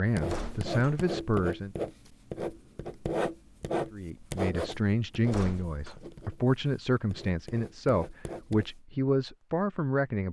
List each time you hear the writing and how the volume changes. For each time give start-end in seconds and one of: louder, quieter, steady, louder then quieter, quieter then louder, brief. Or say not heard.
0.1-8.8 quieter.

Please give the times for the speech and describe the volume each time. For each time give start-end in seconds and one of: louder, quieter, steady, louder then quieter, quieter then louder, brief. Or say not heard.
0.0-1.8 brief
3.9-10.2 steady.